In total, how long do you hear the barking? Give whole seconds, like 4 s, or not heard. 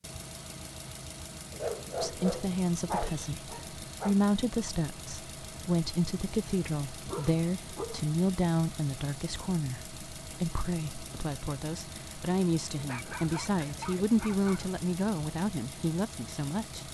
6 s.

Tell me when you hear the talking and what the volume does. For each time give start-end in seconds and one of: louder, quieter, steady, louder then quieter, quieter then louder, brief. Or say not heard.
2.0-16.8 steady.